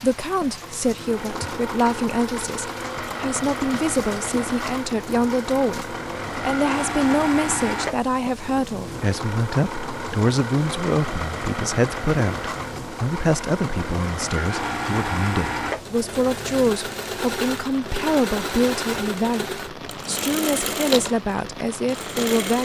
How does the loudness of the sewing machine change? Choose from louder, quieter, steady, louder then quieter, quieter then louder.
steady.